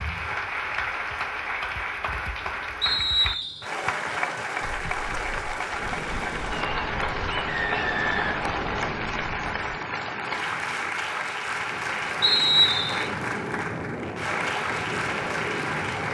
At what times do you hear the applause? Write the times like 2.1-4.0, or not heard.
0.0-16.0.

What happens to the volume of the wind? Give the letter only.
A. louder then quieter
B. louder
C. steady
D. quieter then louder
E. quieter
D.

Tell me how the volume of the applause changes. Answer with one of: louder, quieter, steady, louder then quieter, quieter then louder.
steady.